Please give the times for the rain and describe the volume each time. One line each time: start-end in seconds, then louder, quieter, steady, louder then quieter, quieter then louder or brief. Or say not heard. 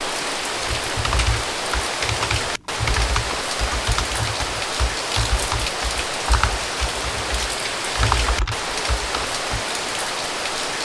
0.0-10.7 steady.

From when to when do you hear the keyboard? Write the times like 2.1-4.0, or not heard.
0.6-9.7.